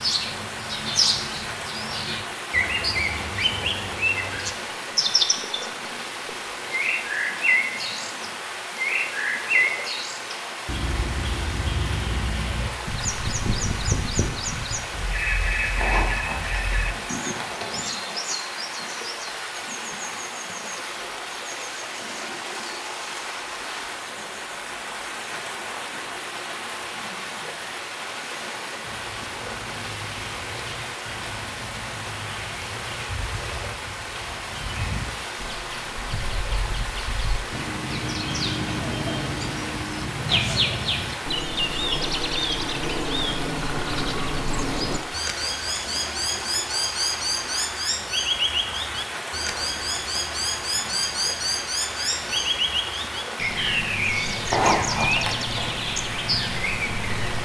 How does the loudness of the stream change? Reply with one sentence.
The loudness of the stream stays about the same.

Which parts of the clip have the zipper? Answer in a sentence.
The zipper can be heard from 15.8 to 17.8 s and from 54.5 to 55.8 s.